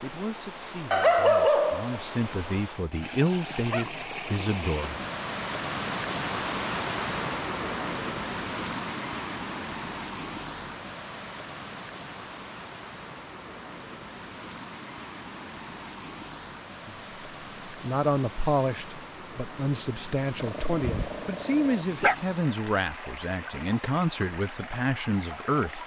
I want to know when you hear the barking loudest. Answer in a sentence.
The loudest moment of the barking is at 1 second.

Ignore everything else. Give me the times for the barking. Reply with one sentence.
You can hear the barking from 0.9 to 3.9 s and from 20.4 to 22.1 s.